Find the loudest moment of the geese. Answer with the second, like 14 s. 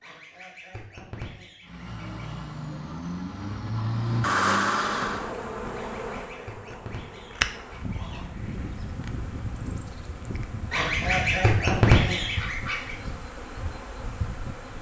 12 s.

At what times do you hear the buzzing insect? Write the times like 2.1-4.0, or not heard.
4.8-14.7.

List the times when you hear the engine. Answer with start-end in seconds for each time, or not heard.
1.6-5.3.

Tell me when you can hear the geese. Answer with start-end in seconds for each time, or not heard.
0.0-2.4, 5.7-8.2, 10.7-12.9.